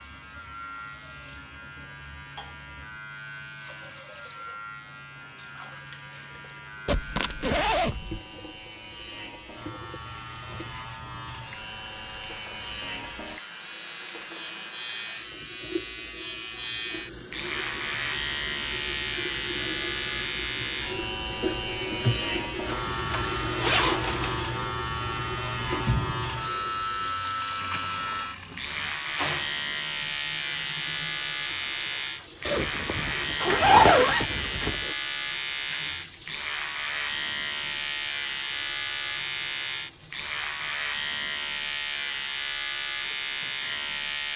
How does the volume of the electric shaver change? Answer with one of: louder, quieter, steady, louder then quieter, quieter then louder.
louder.